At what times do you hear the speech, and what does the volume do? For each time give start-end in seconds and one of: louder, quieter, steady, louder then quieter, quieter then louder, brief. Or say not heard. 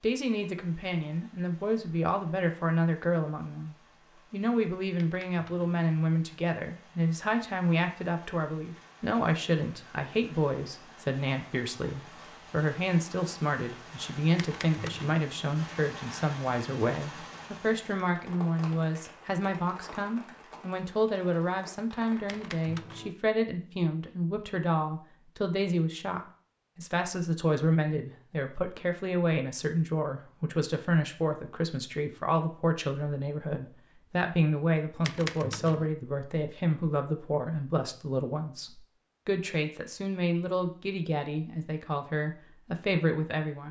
0.0-43.6 steady.